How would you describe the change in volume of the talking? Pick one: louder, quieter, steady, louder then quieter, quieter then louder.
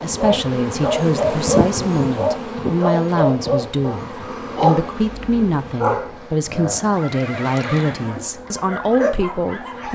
steady.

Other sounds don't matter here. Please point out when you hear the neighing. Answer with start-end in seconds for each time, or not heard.
7.0-8.2.